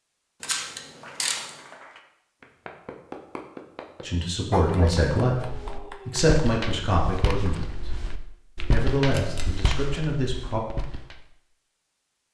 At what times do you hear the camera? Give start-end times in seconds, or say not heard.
0.4-1.6, 9.1-9.5.